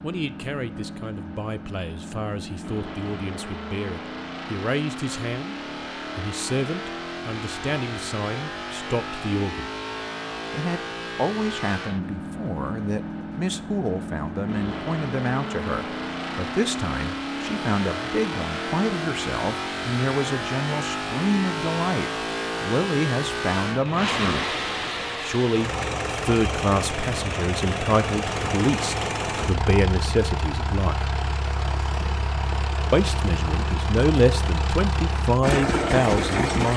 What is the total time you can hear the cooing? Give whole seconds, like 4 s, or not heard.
not heard.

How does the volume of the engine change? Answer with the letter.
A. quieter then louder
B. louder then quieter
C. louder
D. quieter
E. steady
C.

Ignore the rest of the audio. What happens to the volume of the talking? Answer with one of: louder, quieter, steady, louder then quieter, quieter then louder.
louder.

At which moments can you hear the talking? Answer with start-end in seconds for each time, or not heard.
0.0-9.7, 10.5-24.4, 25.2-31.1, 32.9-36.7.